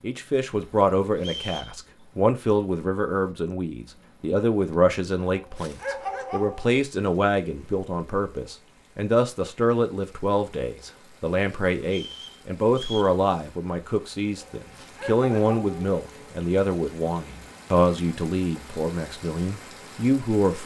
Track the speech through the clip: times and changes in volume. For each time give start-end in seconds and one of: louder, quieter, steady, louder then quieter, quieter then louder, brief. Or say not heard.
0.0-20.6 steady.